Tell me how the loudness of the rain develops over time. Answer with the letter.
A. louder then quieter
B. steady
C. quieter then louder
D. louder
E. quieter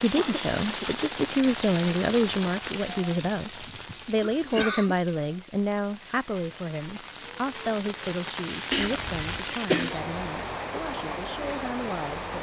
C.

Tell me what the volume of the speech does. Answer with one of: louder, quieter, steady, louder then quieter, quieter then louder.
quieter.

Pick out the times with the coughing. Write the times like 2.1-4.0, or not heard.
0.1-0.9, 4.2-5.0, 8.7-9.9.